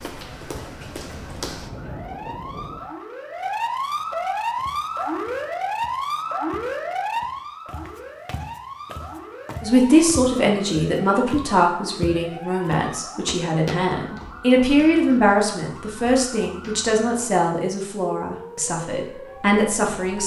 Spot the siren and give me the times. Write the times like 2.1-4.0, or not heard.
0.0-20.2.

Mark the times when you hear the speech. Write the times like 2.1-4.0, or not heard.
9.6-20.2.